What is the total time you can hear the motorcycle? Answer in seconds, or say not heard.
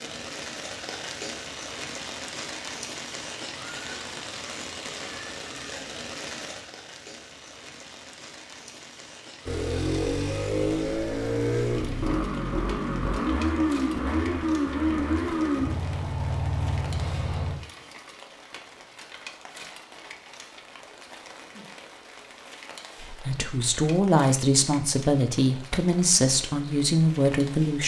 8 s.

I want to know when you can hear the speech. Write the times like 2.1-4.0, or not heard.
23.0-27.8.